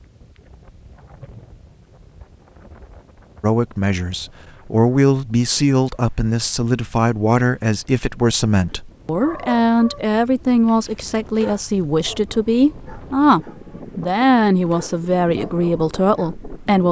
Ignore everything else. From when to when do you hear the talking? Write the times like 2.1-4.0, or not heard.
3.4-16.8.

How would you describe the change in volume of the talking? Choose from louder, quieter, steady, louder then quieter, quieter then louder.
steady.